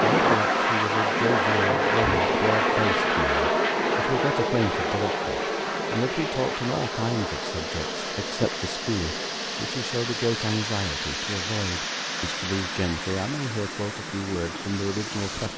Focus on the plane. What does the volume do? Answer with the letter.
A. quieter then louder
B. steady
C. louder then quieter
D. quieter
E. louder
D.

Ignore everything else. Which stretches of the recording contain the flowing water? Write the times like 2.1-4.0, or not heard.
0.0-15.5.